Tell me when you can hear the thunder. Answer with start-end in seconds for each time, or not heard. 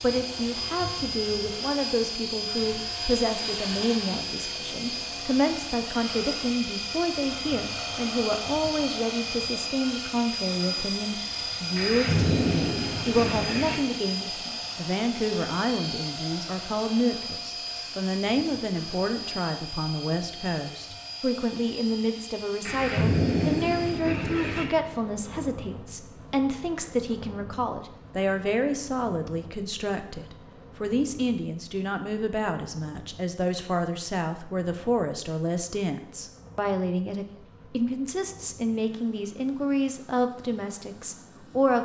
11.8-13.8, 22.6-24.6.